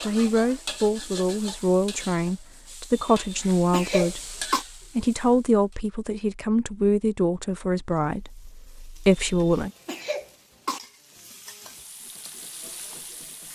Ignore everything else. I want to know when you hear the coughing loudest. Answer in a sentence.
The loudest moment of the coughing is at 4 seconds.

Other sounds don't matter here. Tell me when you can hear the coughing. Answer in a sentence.
The coughing can be heard from 3.0 to 4.7 s and from 9.2 to 10.8 s.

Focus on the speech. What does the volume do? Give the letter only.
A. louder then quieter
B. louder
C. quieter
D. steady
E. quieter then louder
D.